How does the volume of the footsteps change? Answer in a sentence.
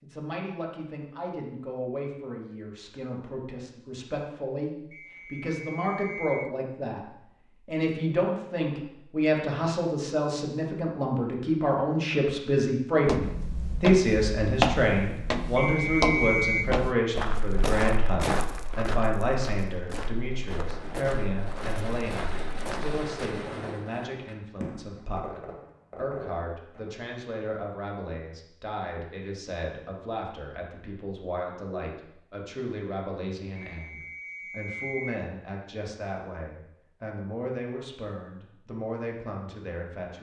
The volume of the footsteps goes down.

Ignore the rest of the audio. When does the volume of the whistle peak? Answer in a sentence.
The volume of the whistle peaks at 16 seconds.